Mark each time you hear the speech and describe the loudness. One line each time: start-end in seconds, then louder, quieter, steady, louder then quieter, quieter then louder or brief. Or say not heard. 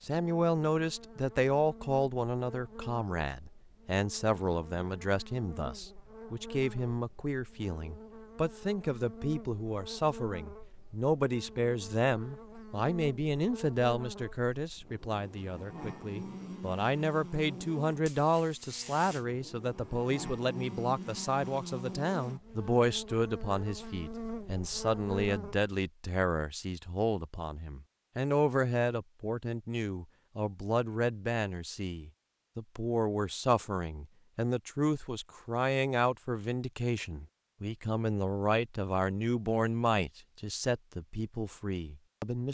0.0-42.4 steady.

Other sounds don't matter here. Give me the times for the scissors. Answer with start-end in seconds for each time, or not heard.
not heard.